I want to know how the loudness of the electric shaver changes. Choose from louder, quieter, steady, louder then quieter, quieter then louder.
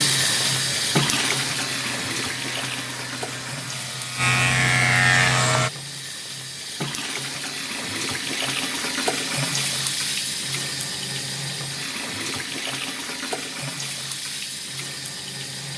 louder.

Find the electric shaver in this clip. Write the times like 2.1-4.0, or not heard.
0.0-5.7.